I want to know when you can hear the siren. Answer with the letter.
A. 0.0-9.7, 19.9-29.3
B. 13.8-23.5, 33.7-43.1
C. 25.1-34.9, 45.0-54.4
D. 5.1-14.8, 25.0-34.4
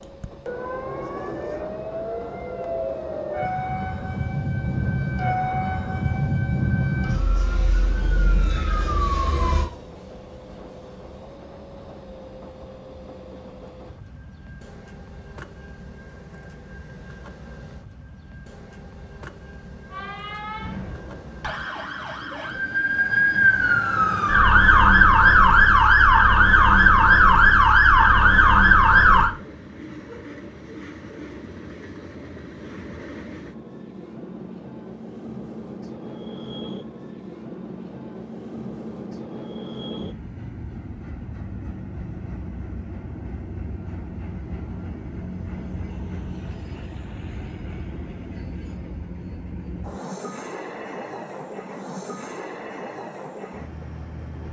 A.